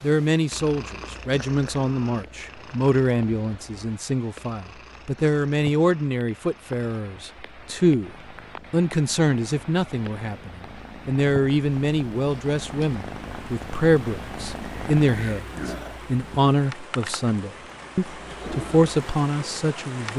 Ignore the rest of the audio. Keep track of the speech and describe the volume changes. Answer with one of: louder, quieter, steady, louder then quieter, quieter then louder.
steady.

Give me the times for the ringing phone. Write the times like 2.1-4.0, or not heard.
not heard.